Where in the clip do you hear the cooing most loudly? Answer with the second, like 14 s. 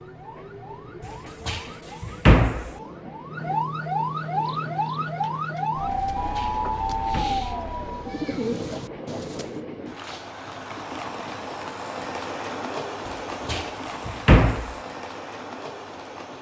8 s.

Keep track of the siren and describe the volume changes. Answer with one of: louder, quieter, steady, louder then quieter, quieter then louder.
louder.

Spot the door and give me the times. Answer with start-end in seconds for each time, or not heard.
1.4-2.7, 6.2-7.3, 13.4-14.8.